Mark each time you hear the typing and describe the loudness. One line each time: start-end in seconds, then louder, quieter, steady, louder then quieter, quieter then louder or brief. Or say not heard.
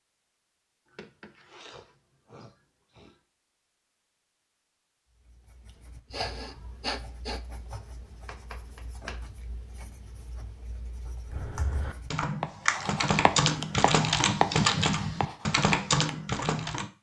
11.2-16.9 louder.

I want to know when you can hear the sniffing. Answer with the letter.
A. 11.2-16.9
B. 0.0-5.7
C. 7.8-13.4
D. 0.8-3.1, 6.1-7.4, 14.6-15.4
D.